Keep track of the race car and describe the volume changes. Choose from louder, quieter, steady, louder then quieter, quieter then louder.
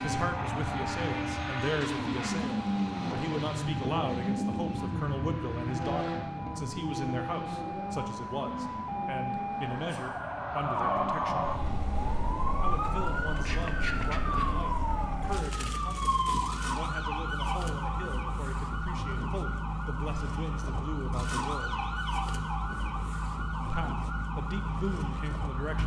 quieter.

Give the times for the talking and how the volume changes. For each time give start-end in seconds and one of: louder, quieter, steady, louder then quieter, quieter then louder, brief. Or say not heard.
0.0-11.5 steady
12.6-21.8 steady
23.6-25.8 brief.